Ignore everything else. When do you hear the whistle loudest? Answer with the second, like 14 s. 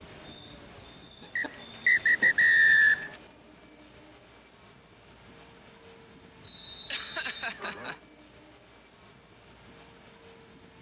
3 s.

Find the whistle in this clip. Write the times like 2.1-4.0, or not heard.
1.4-3.1, 6.4-7.5.